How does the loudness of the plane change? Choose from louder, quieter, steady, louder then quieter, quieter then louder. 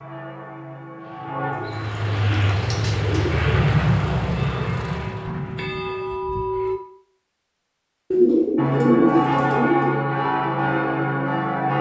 louder then quieter.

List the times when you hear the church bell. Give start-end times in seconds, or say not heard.
0.0-1.9, 4.3-6.8, 8.6-11.7.